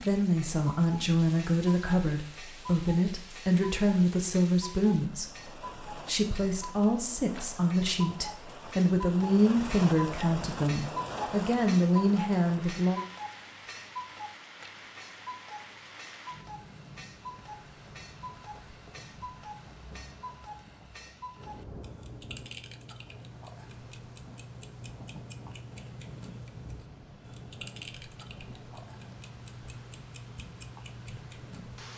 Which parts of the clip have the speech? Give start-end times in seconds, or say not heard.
0.0-13.0.